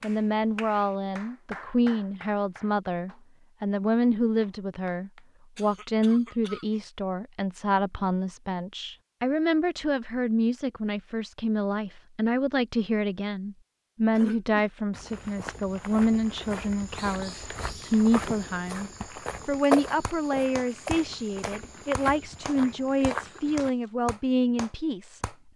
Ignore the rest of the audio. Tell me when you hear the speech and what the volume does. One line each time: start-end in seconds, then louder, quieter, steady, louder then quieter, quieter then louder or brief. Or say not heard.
0.0-25.5 steady.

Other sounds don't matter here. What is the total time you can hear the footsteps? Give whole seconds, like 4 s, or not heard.
9 s.